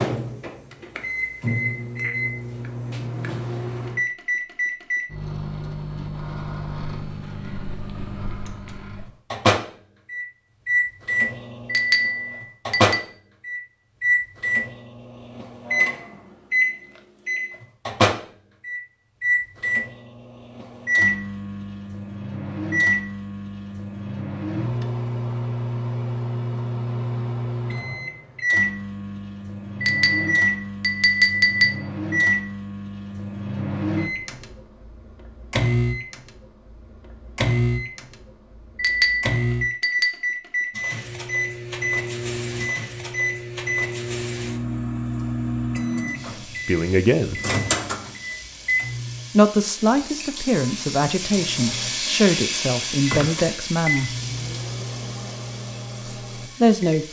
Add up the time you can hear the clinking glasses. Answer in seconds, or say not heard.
5 s.